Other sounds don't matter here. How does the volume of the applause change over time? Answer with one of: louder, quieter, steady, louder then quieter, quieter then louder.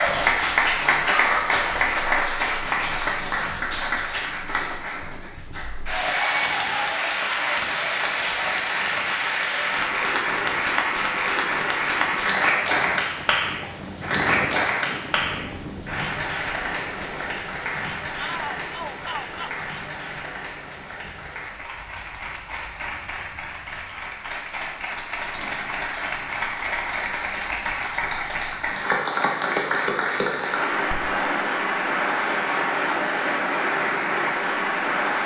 quieter then louder.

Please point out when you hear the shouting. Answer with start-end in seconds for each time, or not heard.
18.1-19.6.